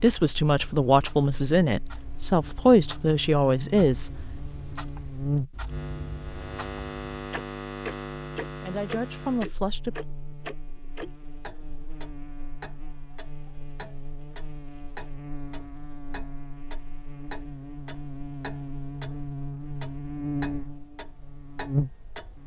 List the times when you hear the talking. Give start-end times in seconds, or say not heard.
0.0-4.1, 8.6-9.9.